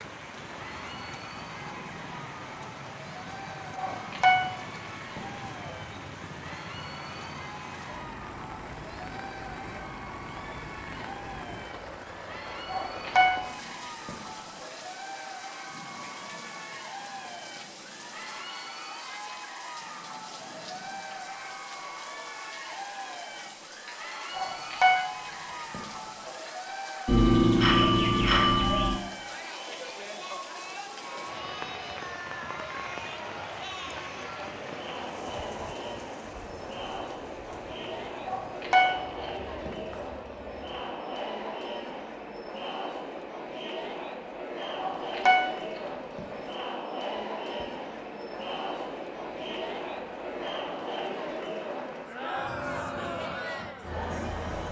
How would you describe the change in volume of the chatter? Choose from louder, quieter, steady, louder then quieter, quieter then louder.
louder.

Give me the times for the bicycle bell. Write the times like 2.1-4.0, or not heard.
27.1-28.9.